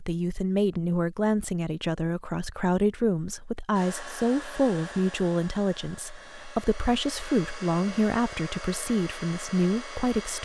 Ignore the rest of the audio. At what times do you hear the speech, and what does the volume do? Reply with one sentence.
You can hear the speech from 0.0 to 10.4 s, at a steady volume.